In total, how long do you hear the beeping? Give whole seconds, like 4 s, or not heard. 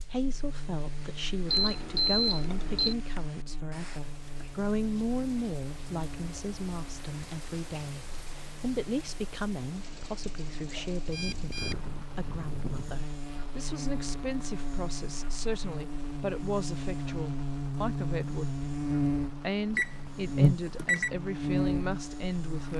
5 s.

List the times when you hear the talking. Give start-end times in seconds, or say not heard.
0.1-18.6, 19.3-22.7.